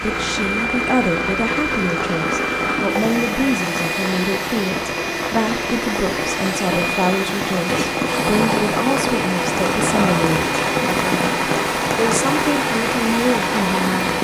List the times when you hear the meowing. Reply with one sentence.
The meowing can't be heard in this clip.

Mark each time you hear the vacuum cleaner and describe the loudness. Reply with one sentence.
The vacuum cleaner can be heard from 0.0 to 14.1 s, at a steady volume.